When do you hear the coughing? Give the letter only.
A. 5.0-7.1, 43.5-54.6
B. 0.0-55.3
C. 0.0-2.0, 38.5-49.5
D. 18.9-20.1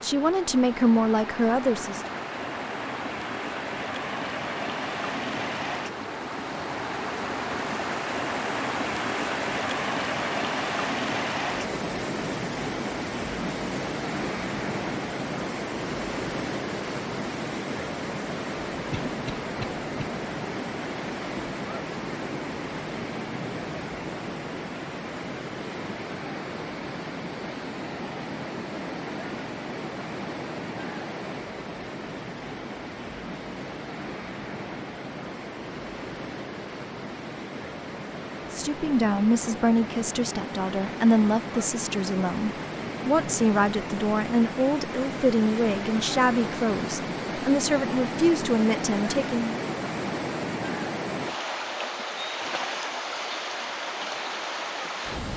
D.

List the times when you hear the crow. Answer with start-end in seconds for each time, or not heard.
not heard.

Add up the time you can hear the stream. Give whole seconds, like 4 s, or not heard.
55 s.